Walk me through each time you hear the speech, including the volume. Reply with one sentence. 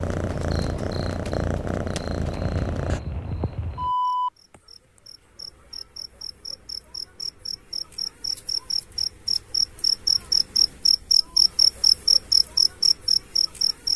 The speech can't be heard in this clip.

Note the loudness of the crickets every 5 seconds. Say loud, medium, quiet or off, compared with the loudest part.
quiet, medium, loud.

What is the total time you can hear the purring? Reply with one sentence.
You can hear the purring for 3 seconds altogether.